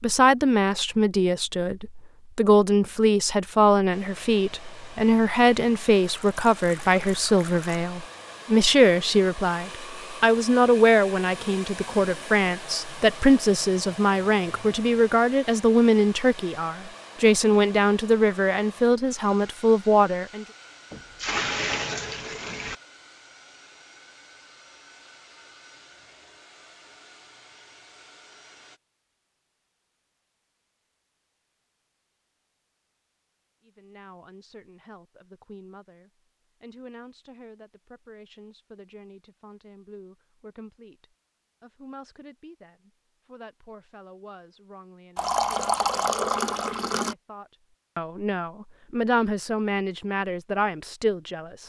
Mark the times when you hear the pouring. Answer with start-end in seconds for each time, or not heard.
6.0-7.8, 20.9-22.8, 45.1-47.1.